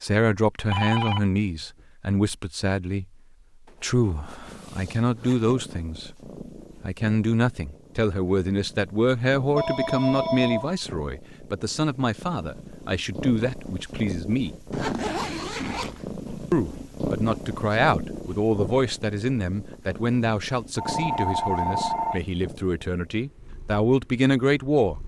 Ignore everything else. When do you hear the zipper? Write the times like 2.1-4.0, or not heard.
3.6-5.5, 14.7-16.1.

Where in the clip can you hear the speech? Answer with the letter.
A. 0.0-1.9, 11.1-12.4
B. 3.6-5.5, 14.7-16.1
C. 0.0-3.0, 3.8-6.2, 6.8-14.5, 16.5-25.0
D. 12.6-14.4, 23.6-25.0
C.